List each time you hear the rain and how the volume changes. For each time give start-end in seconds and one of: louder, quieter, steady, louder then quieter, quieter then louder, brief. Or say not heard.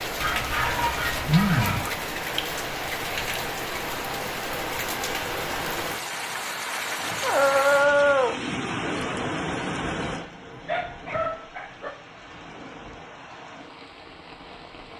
0.0-14.9 quieter.